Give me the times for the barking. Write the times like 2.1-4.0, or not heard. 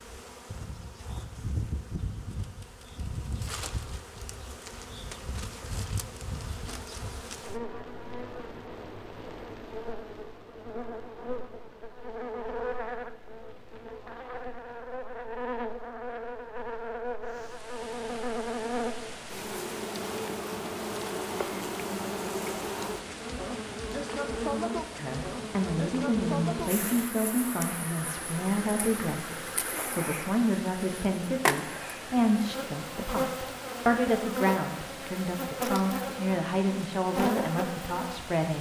not heard.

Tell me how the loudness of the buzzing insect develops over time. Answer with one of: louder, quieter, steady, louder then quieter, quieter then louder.
louder.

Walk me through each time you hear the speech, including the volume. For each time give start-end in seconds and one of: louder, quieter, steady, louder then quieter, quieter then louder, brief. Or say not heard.
24.9-38.5 steady.